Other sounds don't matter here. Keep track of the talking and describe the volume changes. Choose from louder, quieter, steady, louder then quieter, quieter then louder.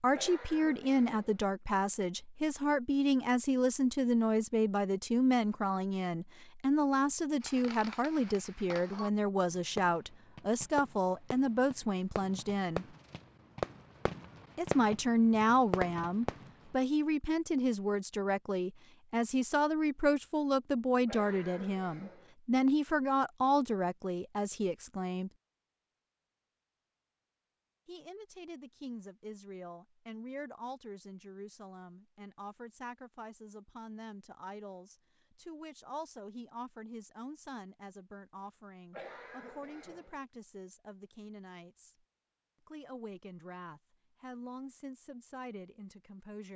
quieter.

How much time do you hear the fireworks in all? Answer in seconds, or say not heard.
9 s.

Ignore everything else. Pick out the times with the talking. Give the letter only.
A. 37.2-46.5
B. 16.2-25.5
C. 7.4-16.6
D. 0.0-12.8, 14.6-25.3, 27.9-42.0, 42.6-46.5
D.